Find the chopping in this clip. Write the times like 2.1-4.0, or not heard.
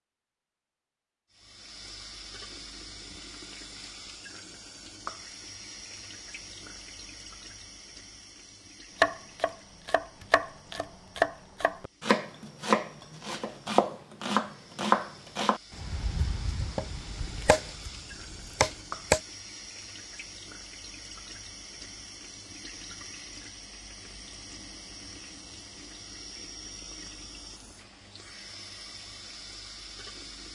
9.0-19.2.